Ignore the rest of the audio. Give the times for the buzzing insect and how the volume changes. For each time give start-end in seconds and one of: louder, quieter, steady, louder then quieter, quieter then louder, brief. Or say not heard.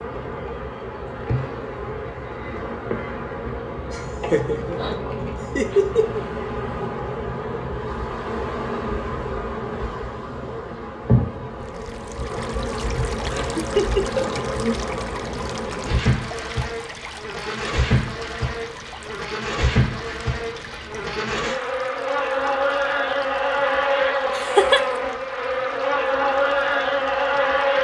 0.0-27.7 louder.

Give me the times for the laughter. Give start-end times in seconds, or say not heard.
3.9-6.2, 13.3-14.2, 24.3-24.8.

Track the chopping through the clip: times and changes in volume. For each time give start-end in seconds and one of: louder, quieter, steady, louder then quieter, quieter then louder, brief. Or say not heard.
not heard.